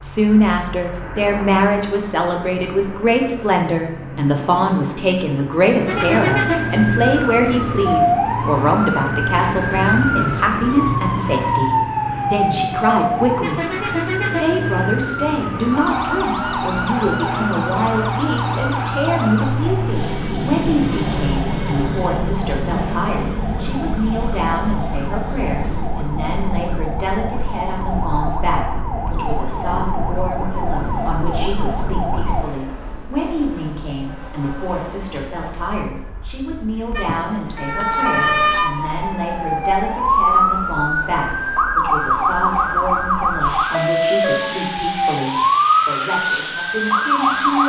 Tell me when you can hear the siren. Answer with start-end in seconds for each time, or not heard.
5.8-32.5, 37.0-47.6.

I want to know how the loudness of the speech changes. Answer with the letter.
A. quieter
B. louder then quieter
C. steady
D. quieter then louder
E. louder
A.